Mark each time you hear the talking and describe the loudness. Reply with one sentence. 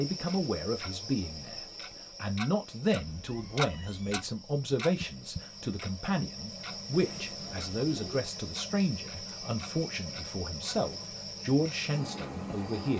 You can hear the talking from 0.0 to 12.9 s, at a steady volume.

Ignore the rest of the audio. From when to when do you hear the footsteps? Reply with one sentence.
The footsteps can't be heard in this clip.